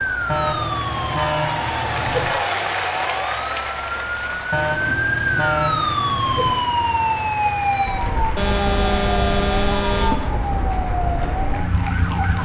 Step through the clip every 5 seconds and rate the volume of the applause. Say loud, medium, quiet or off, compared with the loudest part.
loud, medium, medium.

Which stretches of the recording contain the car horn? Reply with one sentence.
The car horn can be heard from 0.2 to 2.3 s, from 4.5 to 6.5 s and from 8.3 to 10.2 s.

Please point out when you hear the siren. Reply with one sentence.
You can hear the siren from 0.0 to 12.3 s.